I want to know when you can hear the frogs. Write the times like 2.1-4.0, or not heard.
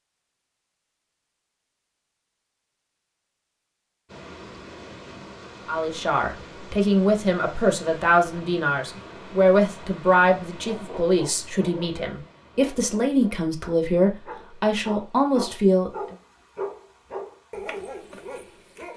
not heard.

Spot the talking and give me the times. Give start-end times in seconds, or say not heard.
5.7-16.1.